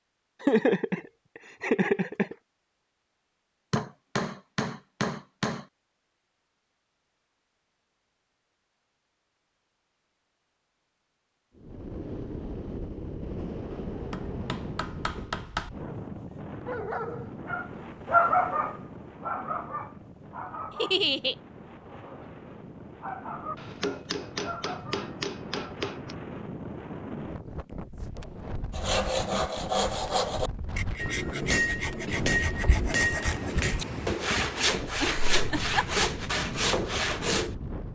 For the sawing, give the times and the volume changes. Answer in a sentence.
The sawing can be heard from 28.7 to 37.5 s, getting quieter then louder.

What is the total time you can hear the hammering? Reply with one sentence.
The hammering can be heard for 9 seconds in total.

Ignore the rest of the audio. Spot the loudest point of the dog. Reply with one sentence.
The volume of the dog peaks at 18 seconds.